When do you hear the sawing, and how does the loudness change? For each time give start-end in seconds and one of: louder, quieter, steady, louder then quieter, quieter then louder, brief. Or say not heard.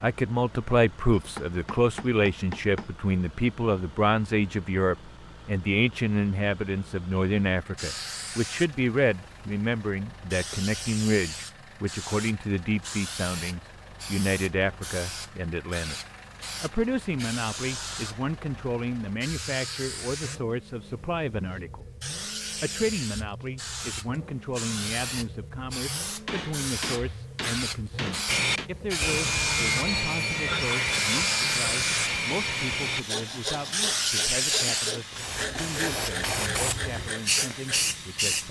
28.2-37.9 quieter.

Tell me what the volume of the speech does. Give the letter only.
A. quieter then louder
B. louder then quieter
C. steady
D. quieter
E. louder
D.